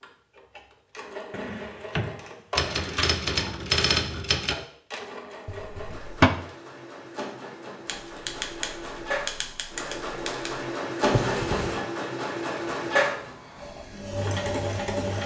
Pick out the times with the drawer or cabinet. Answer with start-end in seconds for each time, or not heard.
1.3-3.1, 5.5-6.3, 11.1-11.8.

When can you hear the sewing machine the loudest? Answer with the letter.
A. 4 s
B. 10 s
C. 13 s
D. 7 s
C.